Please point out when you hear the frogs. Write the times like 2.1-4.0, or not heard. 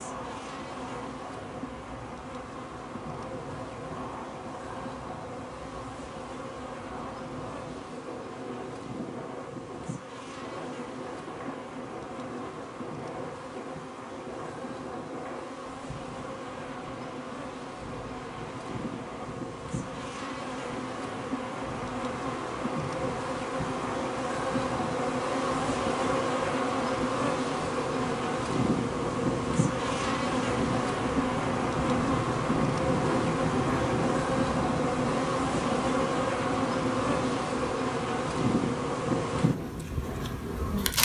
not heard.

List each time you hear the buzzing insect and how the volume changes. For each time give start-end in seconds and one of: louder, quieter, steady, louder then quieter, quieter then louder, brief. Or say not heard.
0.0-41.0 louder.